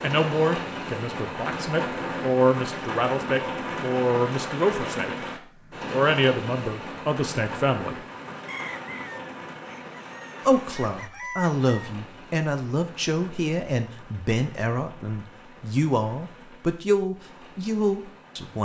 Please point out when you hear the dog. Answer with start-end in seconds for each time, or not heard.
not heard.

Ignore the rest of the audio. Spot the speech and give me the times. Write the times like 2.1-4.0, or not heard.
0.0-5.2, 5.9-8.0, 10.4-18.6.